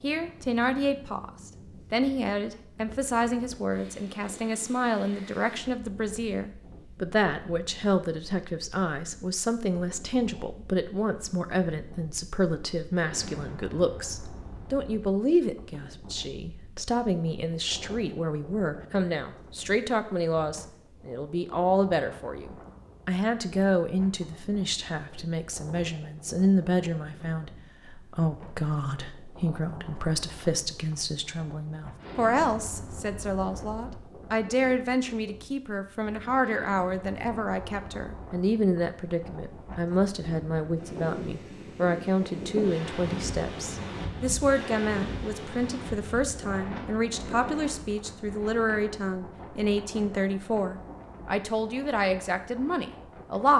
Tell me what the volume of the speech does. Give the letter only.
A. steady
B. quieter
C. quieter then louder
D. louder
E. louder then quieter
A.